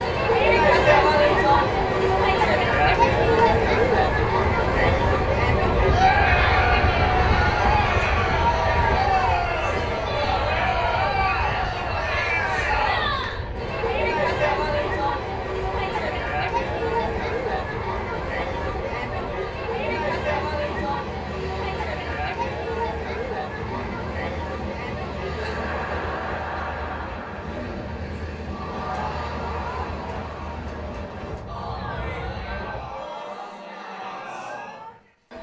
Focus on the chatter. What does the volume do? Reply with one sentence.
The loudness of the chatter goes down.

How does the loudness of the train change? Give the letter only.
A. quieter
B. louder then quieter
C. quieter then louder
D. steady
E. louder
A.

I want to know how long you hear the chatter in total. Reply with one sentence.
The chatter can be heard for 35 seconds in total.